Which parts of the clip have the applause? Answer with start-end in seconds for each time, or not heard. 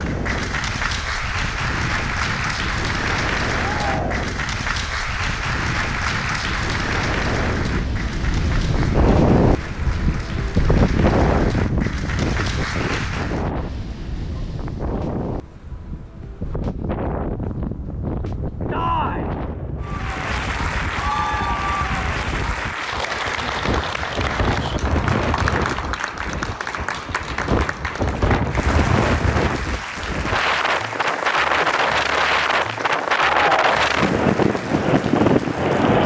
0.0-13.5, 19.8-36.0.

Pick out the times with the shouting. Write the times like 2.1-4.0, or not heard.
3.5-4.3, 18.7-19.3, 33.4-33.8.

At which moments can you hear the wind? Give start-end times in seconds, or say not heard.
0.0-36.0.